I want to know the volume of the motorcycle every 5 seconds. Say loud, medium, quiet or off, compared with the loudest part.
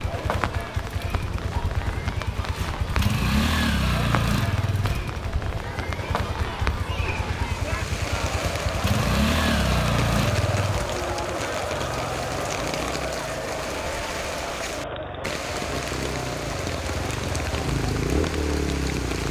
loud, loud, medium, loud.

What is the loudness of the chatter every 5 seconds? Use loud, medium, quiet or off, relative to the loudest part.
medium, loud, loud, medium.